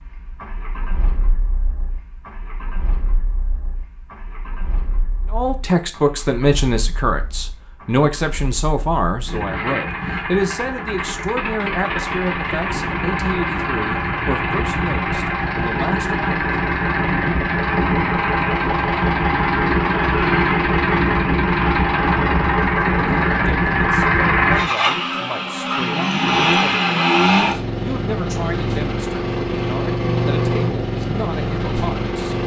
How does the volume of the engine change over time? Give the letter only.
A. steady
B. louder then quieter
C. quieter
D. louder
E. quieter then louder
D.